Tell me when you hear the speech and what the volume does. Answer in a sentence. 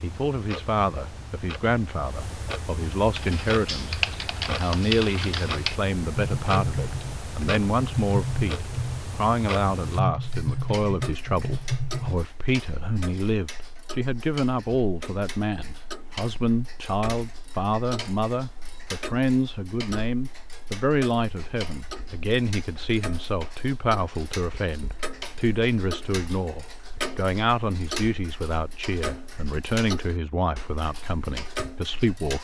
The speech can be heard from 0.0 to 32.4 s, at a steady volume.